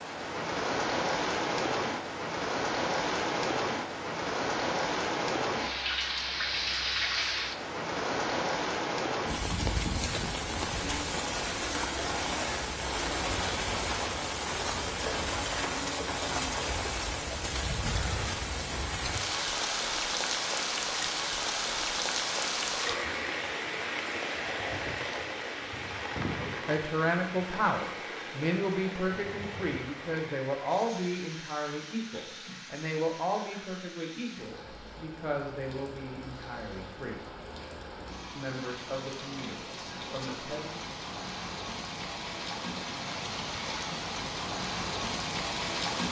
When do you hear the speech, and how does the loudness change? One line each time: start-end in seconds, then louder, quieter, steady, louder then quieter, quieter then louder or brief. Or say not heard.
26.4-37.2 quieter
38.4-40.8 brief.